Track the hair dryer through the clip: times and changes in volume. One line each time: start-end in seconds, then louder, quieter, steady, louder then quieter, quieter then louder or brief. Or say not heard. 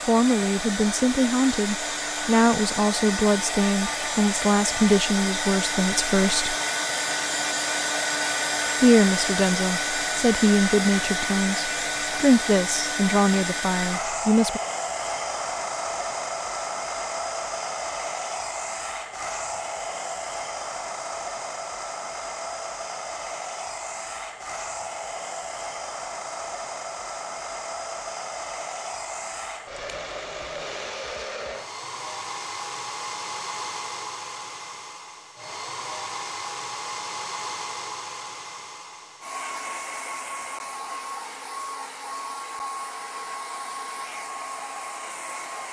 0.0-45.6 quieter.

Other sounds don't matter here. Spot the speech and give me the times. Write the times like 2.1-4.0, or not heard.
0.1-6.5, 8.8-14.6.